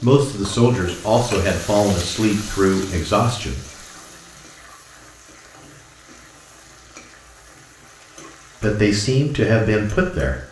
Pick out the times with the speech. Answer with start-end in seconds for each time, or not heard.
0.0-3.6, 8.6-10.4.